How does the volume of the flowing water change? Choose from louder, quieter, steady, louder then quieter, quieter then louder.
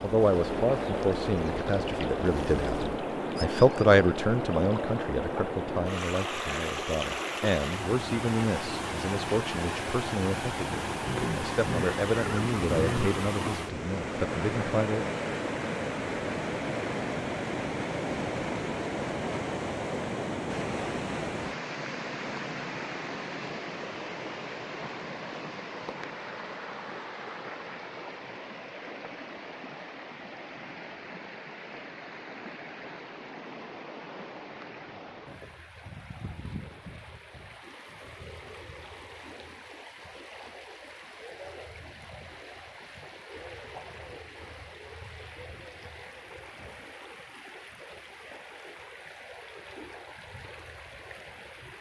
quieter.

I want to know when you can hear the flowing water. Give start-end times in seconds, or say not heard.
0.0-51.7.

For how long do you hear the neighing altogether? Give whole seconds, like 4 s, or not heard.
2 s.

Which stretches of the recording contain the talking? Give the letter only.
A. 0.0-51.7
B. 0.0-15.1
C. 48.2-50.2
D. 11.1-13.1
B.